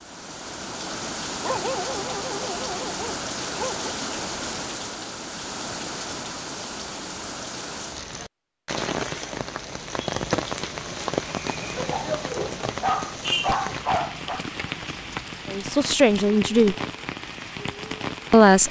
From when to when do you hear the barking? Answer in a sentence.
The barking can be heard from 1.4 to 3.9 s and from 11.9 to 14.4 s.